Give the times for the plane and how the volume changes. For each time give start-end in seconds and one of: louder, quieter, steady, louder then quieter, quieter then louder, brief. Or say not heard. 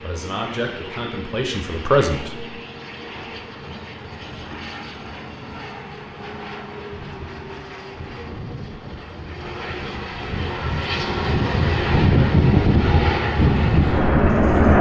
0.0-14.7 louder.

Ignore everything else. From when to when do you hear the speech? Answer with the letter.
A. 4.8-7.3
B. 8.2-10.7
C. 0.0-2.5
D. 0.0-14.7
C.